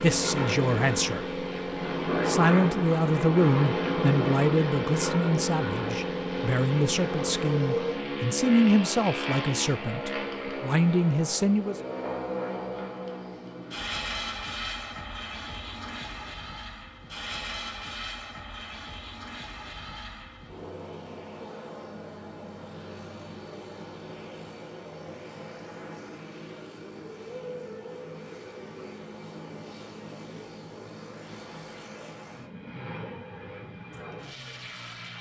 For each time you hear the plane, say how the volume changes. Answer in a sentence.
You can hear the plane from 0.0 to 35.1 s, getting quieter.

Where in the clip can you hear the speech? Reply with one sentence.
The speech can be heard from 0.0 to 1.4 s and from 2.2 to 11.8 s.